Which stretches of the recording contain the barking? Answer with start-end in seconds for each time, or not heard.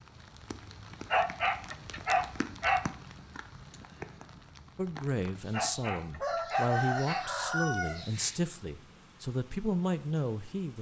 1.1-2.9, 5.5-7.2.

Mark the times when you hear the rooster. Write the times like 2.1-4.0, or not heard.
5.3-8.4.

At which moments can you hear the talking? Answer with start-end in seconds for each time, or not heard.
4.8-10.7.